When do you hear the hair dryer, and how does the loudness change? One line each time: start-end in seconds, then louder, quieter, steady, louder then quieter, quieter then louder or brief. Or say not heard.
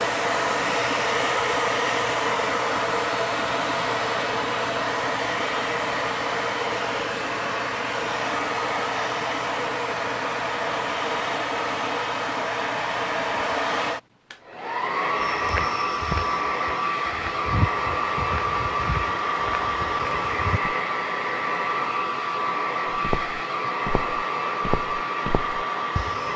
0.0-26.3 steady.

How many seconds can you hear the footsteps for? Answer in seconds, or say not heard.
9 s.